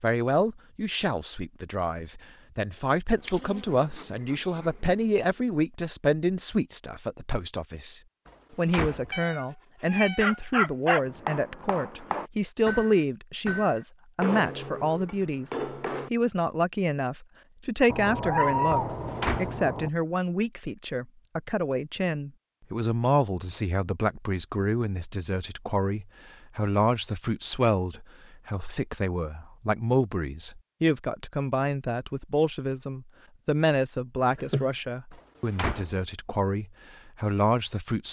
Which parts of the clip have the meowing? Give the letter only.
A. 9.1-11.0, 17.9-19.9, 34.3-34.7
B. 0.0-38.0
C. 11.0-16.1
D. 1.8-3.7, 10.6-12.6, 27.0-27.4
A.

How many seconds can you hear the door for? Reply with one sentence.
The door can be heard for 3 seconds in total.